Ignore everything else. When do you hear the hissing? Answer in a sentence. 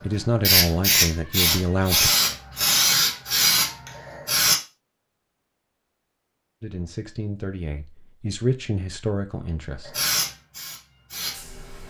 You can hear the hissing from 0.0 to 4.6 s and from 9.8 to 11.8 s.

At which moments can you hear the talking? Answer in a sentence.
You can hear the talking from 0.0 to 2.1 s and from 6.6 to 10.0 s.